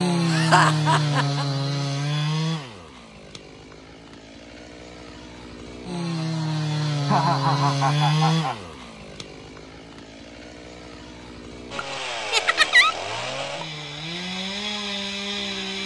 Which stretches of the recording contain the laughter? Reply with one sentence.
You can hear the laughter from 0.2 to 1.4 s, from 7.0 to 8.6 s and from 12.3 to 12.9 s.